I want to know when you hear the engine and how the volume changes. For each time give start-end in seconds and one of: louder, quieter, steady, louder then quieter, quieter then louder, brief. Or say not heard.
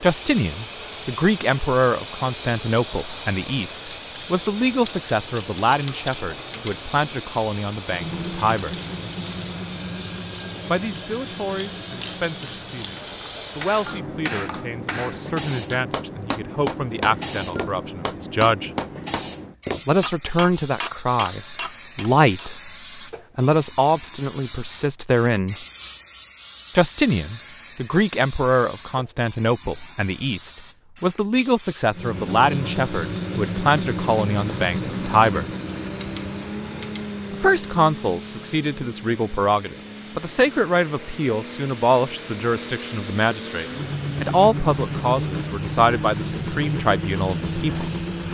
7.8-13.3 quieter
31.9-48.2 quieter then louder.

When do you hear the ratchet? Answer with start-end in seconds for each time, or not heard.
5.7-6.8, 36.0-37.1.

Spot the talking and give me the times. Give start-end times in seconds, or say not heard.
0.0-8.8, 10.7-18.7, 19.9-22.7, 23.4-25.6, 26.8-35.5, 37.3-47.9.